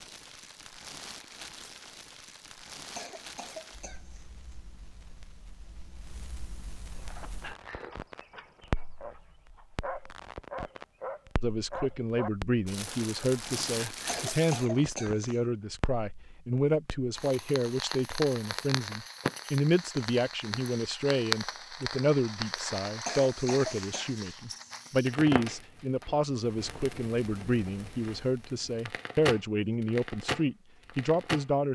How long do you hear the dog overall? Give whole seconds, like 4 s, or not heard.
7 s.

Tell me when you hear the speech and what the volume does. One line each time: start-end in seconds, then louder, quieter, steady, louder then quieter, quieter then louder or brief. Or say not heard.
11.4-31.7 steady.